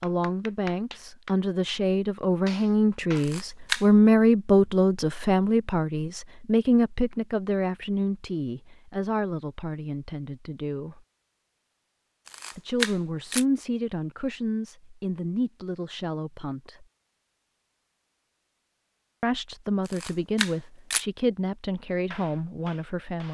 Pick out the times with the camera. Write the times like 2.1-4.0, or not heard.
3.1-3.9, 12.2-13.4, 19.9-21.1.